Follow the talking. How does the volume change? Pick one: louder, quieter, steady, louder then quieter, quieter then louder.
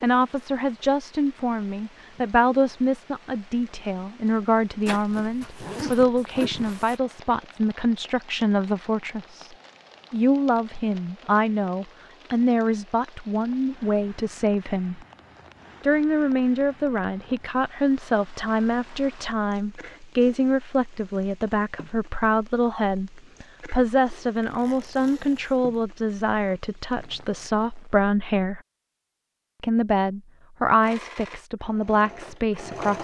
steady.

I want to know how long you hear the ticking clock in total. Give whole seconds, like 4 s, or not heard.
not heard.